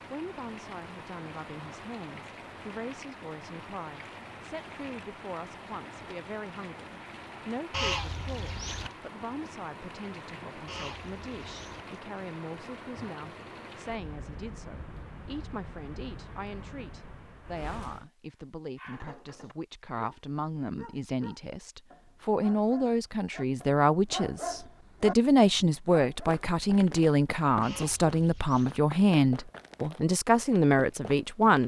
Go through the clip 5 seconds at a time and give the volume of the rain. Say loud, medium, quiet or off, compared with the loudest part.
loud, loud, loud, loud, off, off, off.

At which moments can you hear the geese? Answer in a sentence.
The geese can be heard from 7.7 to 8.9 s, from 10.7 to 11.8 s and from 27.6 to 28.8 s.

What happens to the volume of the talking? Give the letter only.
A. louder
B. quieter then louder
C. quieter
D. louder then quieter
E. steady
A.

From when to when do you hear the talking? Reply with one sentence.
You can hear the talking from 0.1 to 31.6 s.